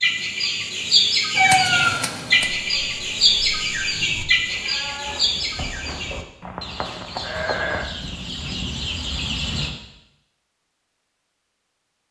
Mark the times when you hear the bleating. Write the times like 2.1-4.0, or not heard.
2.5-7.9.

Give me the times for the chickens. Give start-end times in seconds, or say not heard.
0.0-9.7.